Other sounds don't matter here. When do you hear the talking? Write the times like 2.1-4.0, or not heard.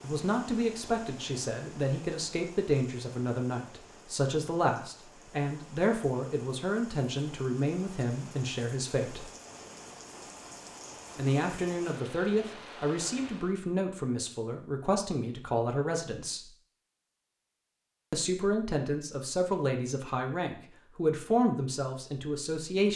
0.0-9.2, 11.2-16.5, 18.1-22.9.